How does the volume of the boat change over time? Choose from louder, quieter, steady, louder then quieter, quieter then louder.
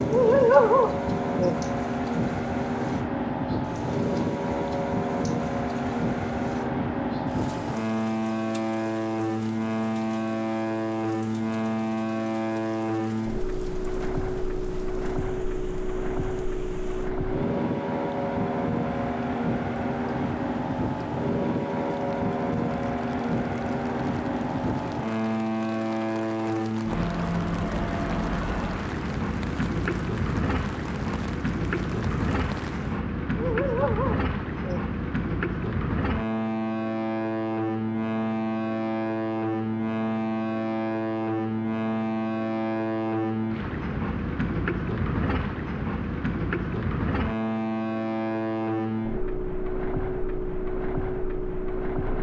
steady.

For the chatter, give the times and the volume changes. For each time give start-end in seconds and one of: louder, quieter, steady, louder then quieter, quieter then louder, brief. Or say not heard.
not heard.